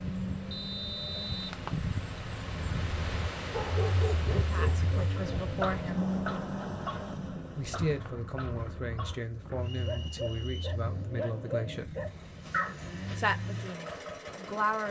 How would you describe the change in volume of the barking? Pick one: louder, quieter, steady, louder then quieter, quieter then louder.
quieter then louder.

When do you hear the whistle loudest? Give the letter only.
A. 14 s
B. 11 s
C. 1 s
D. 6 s
C.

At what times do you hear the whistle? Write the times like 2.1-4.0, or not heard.
0.5-1.4, 9.6-10.8.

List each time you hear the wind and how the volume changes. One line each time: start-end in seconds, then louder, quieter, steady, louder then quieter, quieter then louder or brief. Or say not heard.
0.0-14.8 quieter.